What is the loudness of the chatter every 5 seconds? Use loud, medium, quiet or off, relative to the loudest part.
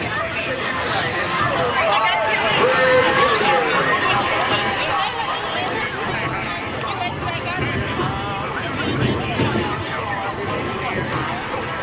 loud, medium, medium.